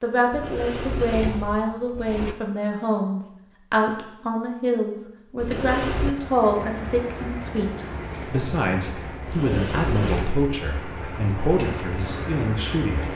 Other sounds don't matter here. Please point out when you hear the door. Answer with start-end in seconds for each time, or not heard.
0.3-2.4, 5.3-6.2, 9.2-10.3.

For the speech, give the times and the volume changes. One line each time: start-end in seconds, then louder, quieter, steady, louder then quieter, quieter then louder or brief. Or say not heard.
0.0-13.1 steady.